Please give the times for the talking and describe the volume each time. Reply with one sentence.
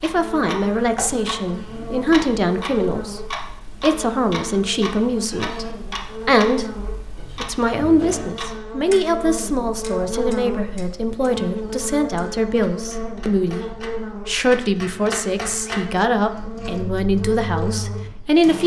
You can hear the talking from 0.0 to 18.6 s, at a steady volume.